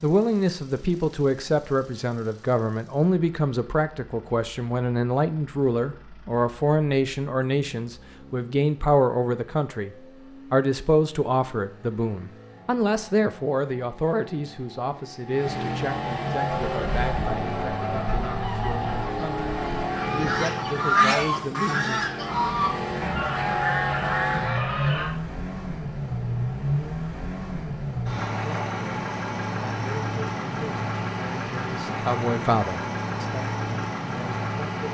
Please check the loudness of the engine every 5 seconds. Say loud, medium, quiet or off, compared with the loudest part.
quiet, quiet, quiet, loud, loud, loud, loud.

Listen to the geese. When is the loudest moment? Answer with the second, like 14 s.
21 s.